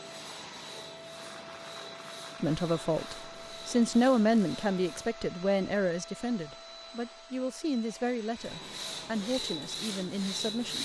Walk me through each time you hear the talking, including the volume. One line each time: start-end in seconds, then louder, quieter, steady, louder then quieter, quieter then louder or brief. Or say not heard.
2.4-10.7 quieter.